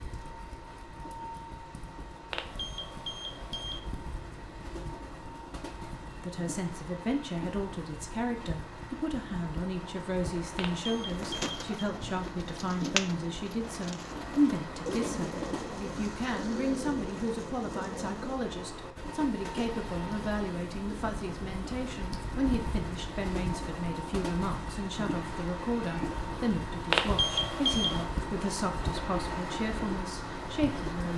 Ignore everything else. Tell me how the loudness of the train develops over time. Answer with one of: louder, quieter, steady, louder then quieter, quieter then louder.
louder.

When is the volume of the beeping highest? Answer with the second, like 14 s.
27 s.